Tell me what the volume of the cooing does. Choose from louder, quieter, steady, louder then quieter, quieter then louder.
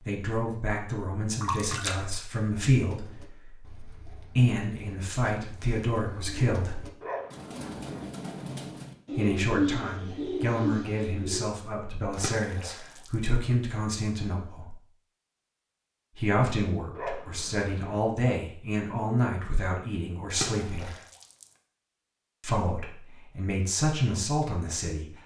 louder.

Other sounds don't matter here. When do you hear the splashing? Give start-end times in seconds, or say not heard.
1.4-2.0, 12.1-13.3, 20.3-21.5.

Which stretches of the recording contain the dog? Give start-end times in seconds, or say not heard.
7.0-8.1, 16.9-18.0.